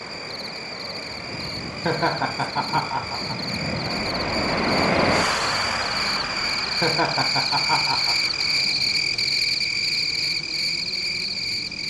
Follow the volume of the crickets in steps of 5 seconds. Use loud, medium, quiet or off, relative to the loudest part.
medium, loud, loud.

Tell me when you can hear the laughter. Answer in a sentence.
You can hear the laughter from 1.9 to 3.4 s and from 6.8 to 8.2 s.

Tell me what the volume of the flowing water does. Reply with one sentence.
The volume of the flowing water goes up, then down.